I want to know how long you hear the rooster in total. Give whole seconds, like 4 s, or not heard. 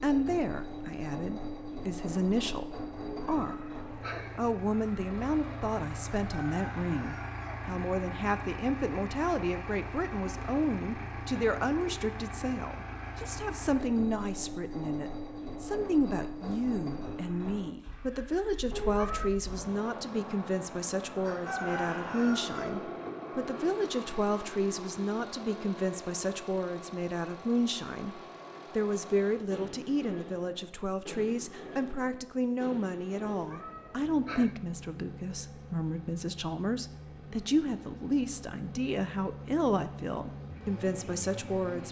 3 s.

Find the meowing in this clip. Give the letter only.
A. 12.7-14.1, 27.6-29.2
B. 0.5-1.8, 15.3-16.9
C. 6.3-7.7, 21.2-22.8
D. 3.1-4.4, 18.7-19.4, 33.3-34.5
D.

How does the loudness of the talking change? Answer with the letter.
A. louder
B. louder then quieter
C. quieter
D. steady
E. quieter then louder
D.